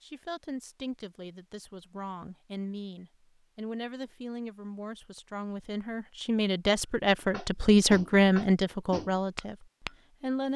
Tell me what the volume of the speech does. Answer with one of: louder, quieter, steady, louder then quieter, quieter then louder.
louder.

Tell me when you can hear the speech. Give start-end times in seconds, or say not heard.
0.0-10.5.